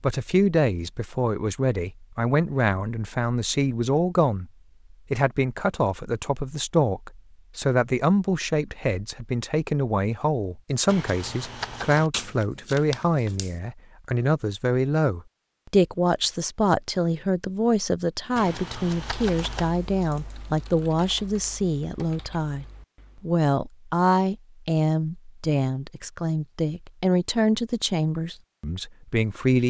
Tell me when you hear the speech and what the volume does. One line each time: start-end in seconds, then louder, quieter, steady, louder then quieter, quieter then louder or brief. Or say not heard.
0.0-29.6 steady.